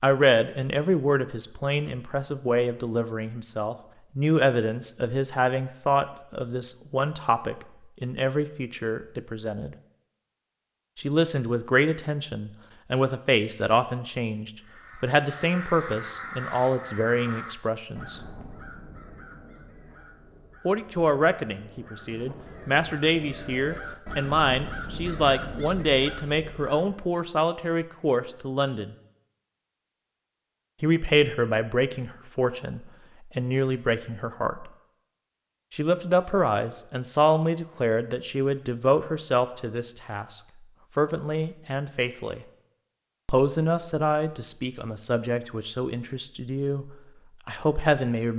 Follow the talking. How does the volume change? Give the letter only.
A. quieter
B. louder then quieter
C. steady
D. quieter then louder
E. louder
C.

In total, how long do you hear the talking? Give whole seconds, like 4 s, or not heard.
41 s.